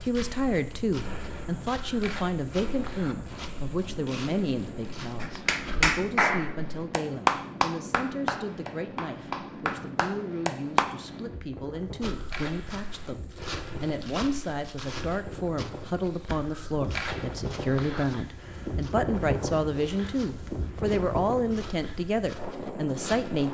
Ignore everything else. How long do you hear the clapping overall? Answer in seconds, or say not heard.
6 s.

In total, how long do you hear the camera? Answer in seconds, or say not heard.
3 s.